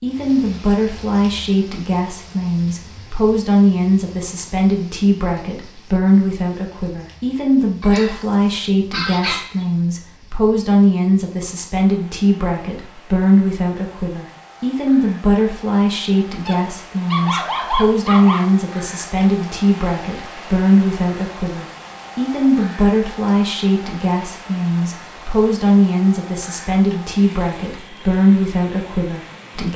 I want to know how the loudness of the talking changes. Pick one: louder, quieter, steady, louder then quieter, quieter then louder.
steady.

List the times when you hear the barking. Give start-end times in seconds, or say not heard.
7.8-9.7, 16.4-18.4.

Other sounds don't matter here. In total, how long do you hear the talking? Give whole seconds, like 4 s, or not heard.
30 s.